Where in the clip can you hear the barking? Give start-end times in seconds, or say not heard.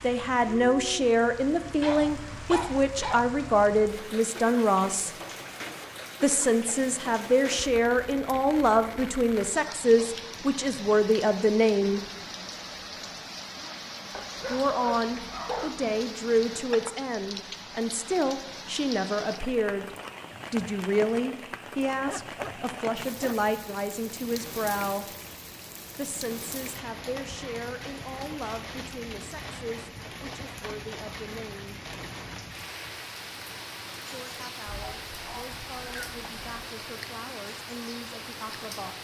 1.8-3.4, 14.1-16.1, 21.8-23.5, 34.6-36.6.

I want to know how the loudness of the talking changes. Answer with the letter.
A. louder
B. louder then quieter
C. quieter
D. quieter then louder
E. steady
C.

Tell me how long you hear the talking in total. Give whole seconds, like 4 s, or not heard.
32 s.